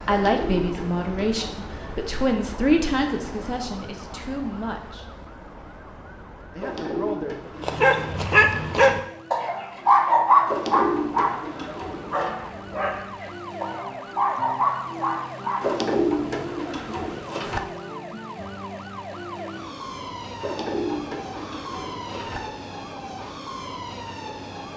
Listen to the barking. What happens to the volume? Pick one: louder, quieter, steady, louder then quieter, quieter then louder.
quieter then louder.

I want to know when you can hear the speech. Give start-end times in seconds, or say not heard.
0.1-5.2, 6.5-7.5.